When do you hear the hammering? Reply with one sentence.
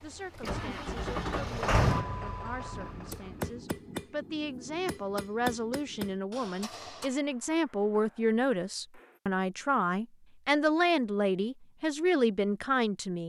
You can hear the hammering from 2.7 to 9.2 s.